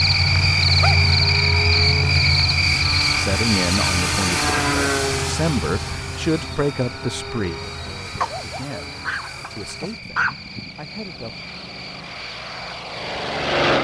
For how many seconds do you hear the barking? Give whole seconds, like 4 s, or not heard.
3 s.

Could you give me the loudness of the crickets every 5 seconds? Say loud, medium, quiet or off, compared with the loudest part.
loud, quiet, quiet.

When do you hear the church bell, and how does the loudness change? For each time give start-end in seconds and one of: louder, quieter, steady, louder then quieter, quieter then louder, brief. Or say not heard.
not heard.